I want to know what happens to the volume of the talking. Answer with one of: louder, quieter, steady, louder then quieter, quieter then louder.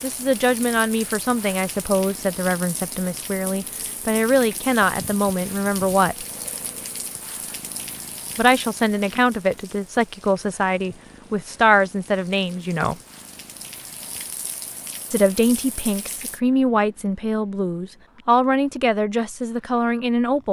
steady.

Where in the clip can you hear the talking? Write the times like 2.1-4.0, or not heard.
0.0-6.2, 8.3-12.9, 15.1-20.4.